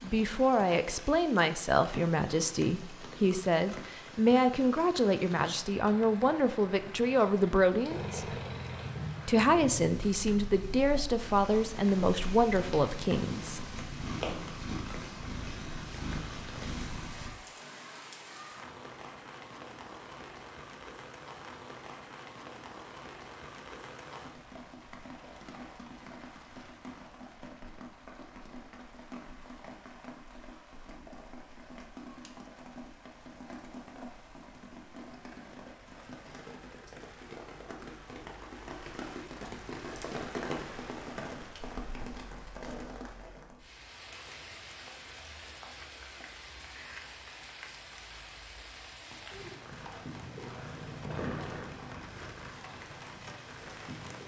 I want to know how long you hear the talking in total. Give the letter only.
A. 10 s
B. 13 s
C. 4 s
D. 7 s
B.